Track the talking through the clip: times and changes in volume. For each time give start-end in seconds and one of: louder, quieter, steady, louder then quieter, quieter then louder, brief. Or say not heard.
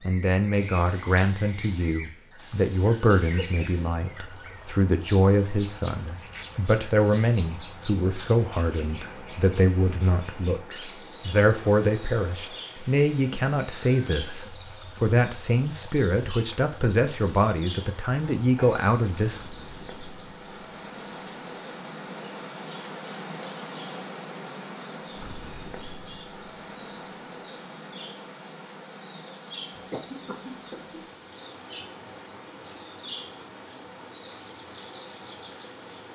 0.0-19.4 steady.